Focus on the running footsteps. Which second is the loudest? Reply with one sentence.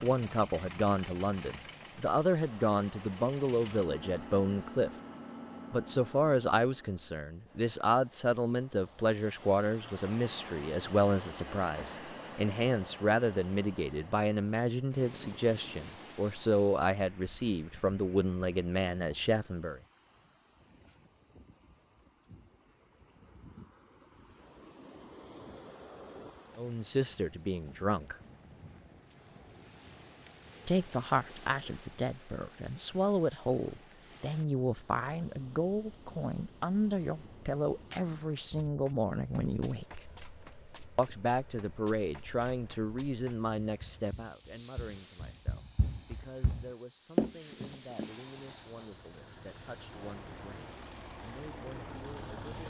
The volume of the running footsteps peaks at 47 seconds.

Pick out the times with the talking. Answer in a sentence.
You can hear the talking from 0.0 to 4.9 s, from 5.7 to 19.8 s, from 26.6 to 28.1 s, from 30.6 to 40.0 s and from 41.0 to 52.6 s.